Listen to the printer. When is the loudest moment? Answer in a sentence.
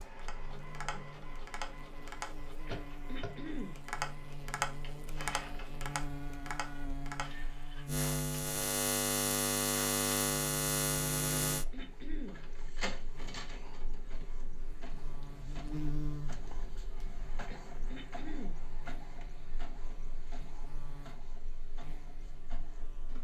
The loudest moment of the printer is at 13 seconds.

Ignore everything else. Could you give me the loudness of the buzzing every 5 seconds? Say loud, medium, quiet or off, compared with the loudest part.
quiet, loud, loud, medium, quiet.